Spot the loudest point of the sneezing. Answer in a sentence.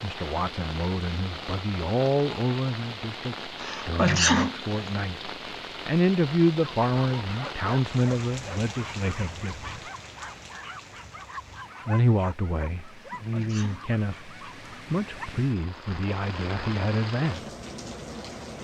The volume of the sneezing peaks at 4 seconds.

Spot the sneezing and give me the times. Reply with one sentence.
You can hear the sneezing from 3.5 to 5.0 s and from 13.1 to 13.8 s.